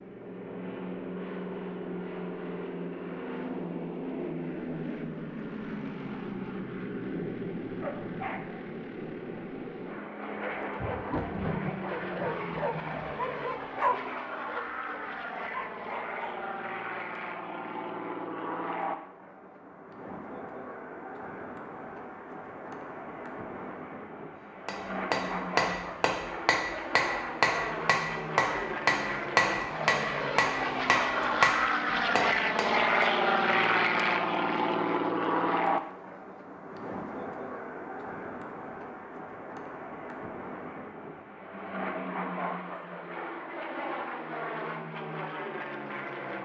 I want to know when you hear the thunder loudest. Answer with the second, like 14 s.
12 s.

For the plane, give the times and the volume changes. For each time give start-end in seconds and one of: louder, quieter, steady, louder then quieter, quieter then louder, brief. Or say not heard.
0.0-46.4 louder then quieter.